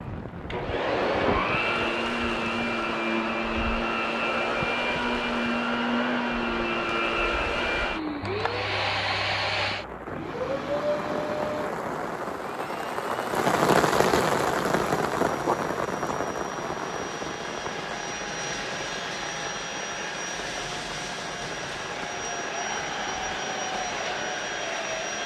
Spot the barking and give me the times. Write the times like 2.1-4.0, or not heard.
15.4-16.1.